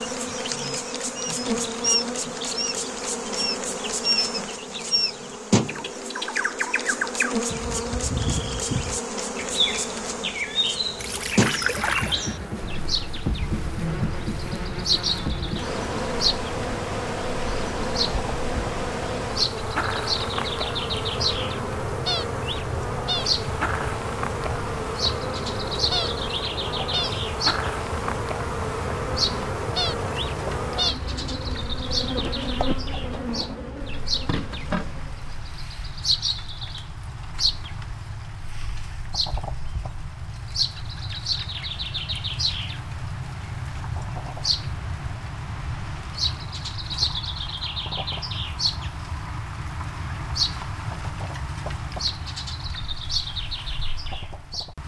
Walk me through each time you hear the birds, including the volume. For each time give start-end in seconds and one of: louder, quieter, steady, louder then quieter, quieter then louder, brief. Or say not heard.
0.0-54.8 steady.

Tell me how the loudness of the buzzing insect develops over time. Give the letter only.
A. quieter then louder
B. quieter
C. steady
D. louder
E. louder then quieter
C.